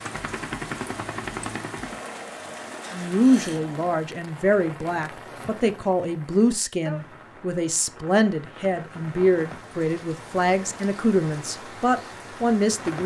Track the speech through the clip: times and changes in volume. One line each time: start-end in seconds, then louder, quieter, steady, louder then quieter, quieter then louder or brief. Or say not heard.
2.9-13.0 steady.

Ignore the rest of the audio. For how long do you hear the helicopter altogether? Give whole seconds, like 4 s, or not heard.
4 s.